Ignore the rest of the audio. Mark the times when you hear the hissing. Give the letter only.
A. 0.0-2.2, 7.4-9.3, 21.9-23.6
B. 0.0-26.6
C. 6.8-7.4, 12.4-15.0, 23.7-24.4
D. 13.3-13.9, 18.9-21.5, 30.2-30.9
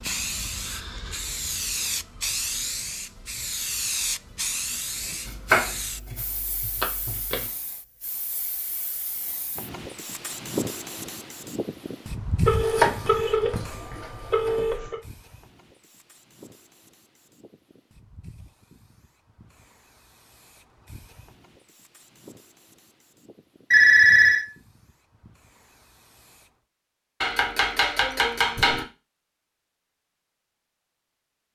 B.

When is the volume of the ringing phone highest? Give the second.
24 s.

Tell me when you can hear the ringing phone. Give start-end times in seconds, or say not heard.
6.8-7.4, 12.4-15.0, 23.7-24.4.